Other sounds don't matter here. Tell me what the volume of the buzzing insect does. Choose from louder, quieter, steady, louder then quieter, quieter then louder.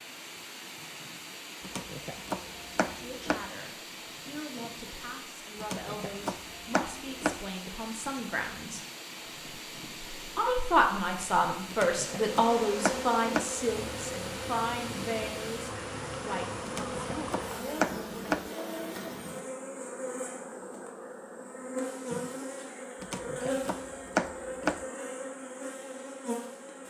steady.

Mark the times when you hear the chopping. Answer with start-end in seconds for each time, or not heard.
1.6-3.5, 5.6-7.5, 11.7-13.6, 16.6-18.5, 23.0-24.9.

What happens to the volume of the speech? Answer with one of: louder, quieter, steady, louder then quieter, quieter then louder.
louder then quieter.